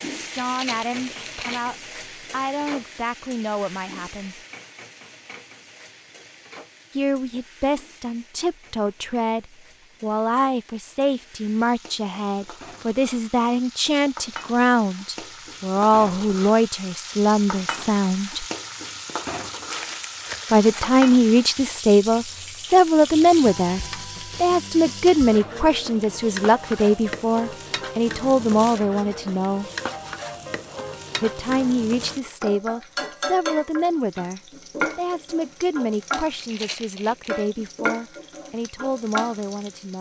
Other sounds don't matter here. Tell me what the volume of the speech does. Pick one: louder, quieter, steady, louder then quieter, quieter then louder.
louder then quieter.